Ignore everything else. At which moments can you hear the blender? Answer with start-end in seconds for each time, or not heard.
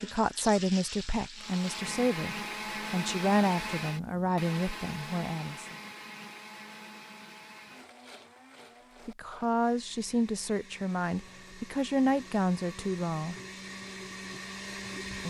1.4-15.2.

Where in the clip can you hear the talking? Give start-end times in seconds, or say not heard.
0.0-5.8, 9.1-13.3.